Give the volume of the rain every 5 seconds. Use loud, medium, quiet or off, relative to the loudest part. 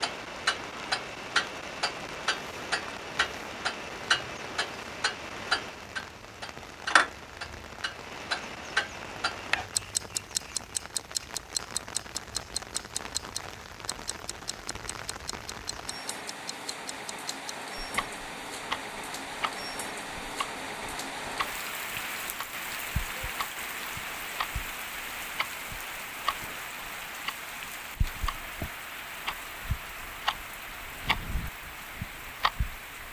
medium, medium, medium, loud, loud, loud, medium.